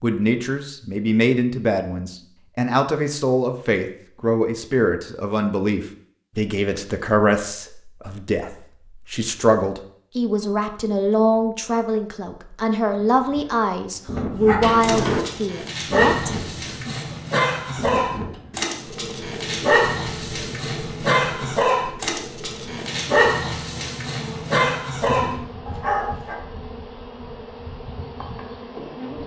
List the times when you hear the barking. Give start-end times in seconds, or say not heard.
14.4-26.4.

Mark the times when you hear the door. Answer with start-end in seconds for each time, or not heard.
14.6-15.2.